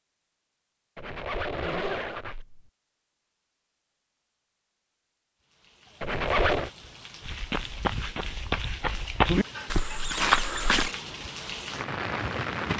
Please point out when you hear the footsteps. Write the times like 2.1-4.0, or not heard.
7.2-10.9.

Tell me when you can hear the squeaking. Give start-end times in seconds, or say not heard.
0.9-2.6, 6.0-6.7, 10.0-10.9.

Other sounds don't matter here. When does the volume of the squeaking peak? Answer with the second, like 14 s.
6 s.